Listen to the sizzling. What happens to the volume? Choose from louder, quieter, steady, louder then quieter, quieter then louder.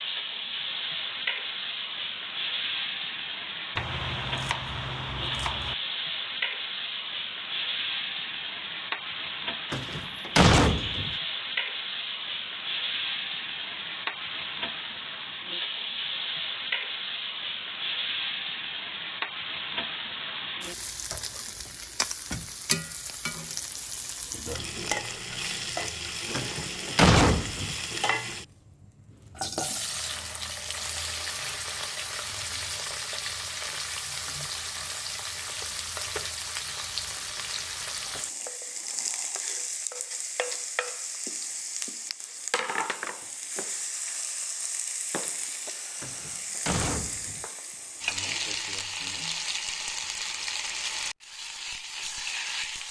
steady.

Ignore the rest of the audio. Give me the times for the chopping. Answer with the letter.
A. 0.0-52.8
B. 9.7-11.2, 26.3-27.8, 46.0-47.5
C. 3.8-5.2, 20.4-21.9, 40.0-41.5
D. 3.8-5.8
D.